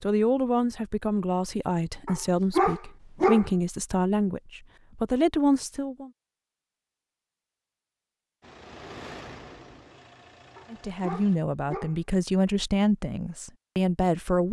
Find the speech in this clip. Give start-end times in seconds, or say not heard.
0.0-6.1, 10.7-14.4.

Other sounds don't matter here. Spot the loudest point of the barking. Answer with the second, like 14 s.
3 s.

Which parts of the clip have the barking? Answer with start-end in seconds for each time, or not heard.
2.0-3.5, 10.6-11.9.